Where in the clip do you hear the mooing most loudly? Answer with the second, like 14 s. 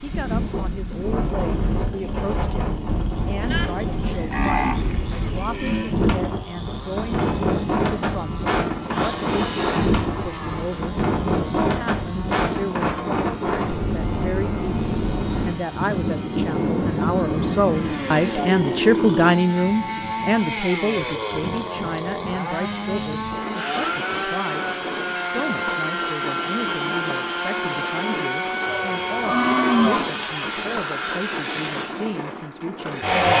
30 s.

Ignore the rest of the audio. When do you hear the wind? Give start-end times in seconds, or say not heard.
0.0-33.3.